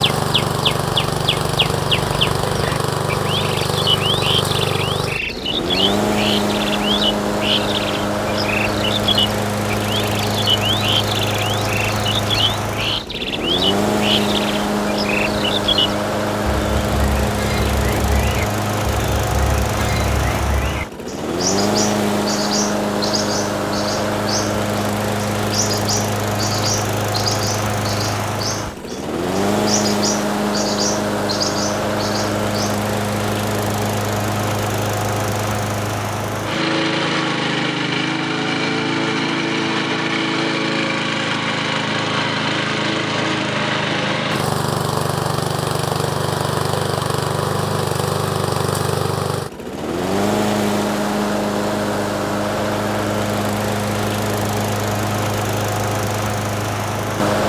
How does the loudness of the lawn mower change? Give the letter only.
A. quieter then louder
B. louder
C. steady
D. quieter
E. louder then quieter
C.